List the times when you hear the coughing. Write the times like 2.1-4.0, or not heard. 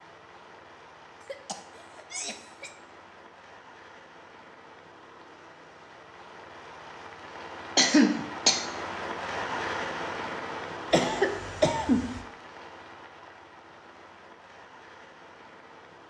1.2-2.7, 7.8-8.7, 10.9-12.2.